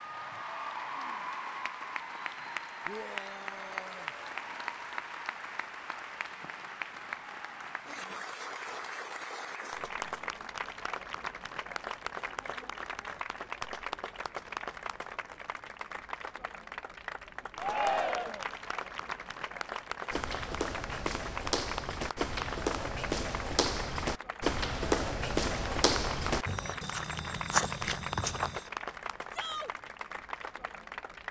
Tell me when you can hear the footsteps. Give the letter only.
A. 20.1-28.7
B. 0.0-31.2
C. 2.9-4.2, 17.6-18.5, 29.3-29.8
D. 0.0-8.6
A.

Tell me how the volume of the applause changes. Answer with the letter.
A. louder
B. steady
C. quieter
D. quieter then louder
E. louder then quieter
B.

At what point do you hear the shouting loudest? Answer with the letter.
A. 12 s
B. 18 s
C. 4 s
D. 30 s
B.